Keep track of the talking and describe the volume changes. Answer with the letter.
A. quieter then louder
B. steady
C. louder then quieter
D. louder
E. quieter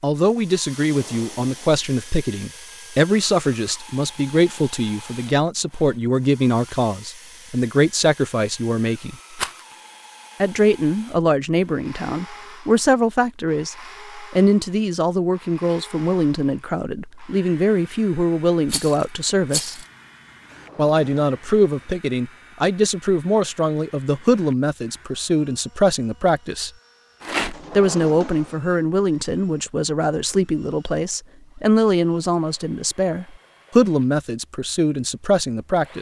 B.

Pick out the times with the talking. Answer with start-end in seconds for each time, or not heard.
0.0-9.2, 10.4-19.8, 20.8-26.7, 27.8-35.9.